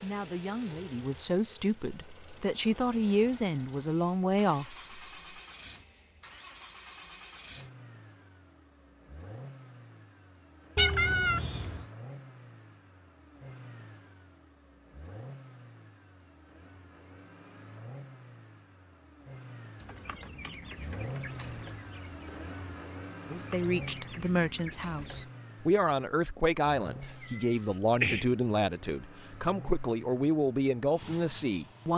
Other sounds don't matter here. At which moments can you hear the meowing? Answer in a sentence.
The meowing can be heard from 10.8 to 11.8 s and from 27.2 to 28.2 s.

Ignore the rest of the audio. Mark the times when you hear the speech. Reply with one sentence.
The speech can be heard from 0.0 to 5.0 s and from 23.3 to 31.9 s.